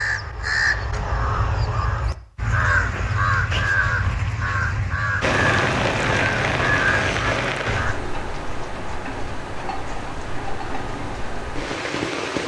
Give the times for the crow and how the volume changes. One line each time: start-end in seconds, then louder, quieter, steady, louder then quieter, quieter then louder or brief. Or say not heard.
0.0-8.0 steady.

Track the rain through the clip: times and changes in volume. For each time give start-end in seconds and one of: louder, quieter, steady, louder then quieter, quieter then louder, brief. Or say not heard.
5.2-12.4 quieter.